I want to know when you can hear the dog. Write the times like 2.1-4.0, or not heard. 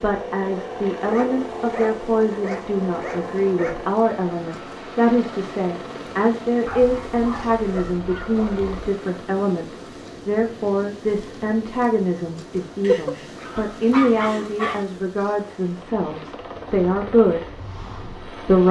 1.1-3.8, 6.7-8.8, 12.8-14.8.